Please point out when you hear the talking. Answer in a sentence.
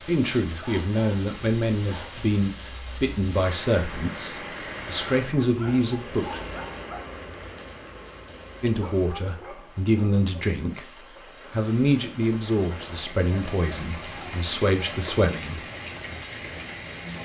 The talking can be heard from 0.1 to 6.4 s, from 8.6 to 10.8 s and from 11.5 to 15.6 s.